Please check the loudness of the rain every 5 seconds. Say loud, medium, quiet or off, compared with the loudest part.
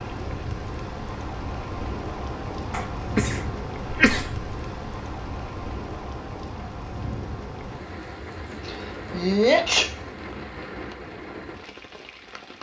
loud, loud, medium.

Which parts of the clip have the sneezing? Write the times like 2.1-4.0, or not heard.
2.7-4.5, 8.7-9.9.